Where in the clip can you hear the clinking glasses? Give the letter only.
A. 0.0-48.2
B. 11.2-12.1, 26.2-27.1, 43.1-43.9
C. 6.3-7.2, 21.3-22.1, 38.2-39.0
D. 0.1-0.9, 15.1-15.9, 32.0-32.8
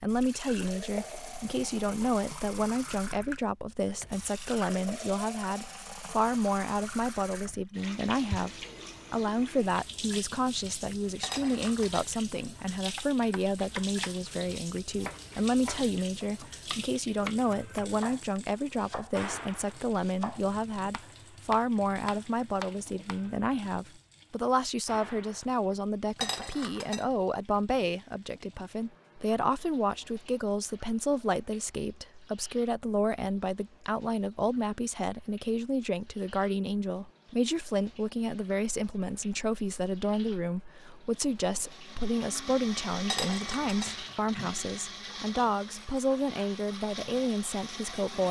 B.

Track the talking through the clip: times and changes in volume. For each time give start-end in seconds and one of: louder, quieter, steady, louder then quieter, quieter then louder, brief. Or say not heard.
0.0-48.2 steady.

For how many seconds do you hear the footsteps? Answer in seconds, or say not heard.
not heard.